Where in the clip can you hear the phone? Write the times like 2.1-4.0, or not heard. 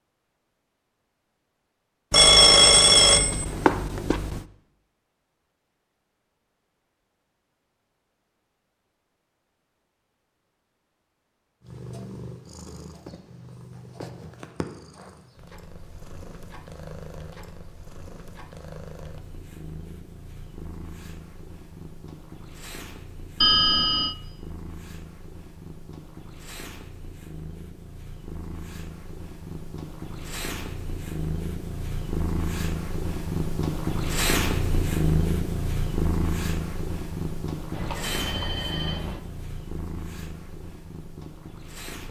2.1-4.4, 23.4-24.1, 37.7-39.2.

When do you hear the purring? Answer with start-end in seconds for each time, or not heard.
11.6-42.0.